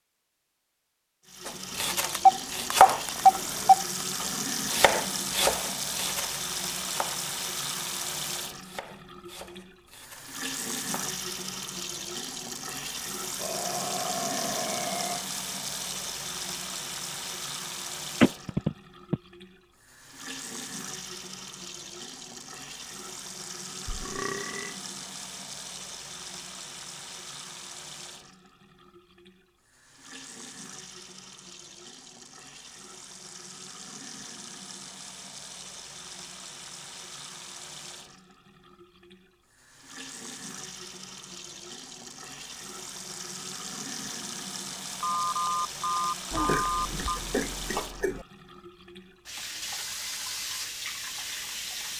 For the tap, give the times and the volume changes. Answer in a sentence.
The tap can be heard from 1.2 to 51.9 s, getting quieter then louder.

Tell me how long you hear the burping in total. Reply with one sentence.
You can hear the burping for 5 seconds altogether.